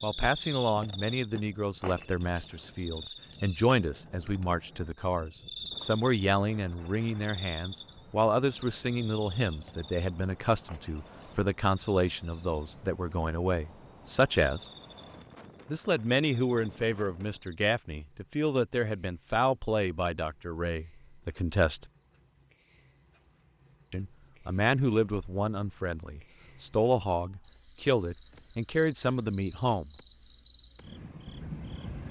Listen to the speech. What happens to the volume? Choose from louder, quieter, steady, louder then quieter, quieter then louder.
steady.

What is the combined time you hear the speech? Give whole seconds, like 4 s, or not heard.
27 s.